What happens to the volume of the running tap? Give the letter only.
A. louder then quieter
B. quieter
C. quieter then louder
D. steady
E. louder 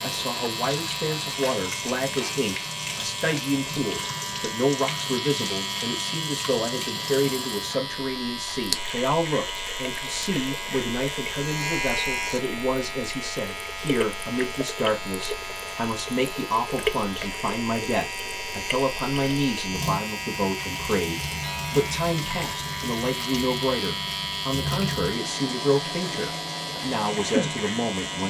D.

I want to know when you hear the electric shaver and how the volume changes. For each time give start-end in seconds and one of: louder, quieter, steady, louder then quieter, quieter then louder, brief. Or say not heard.
0.0-28.2 steady.